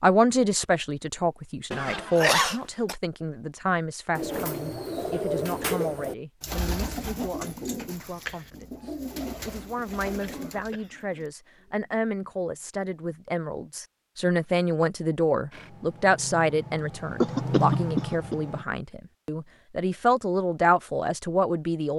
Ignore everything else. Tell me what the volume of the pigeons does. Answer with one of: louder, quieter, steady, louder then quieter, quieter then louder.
quieter.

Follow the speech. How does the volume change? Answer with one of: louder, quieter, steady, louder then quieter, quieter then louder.
quieter then louder.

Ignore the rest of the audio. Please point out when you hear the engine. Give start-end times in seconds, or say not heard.
15.5-18.6.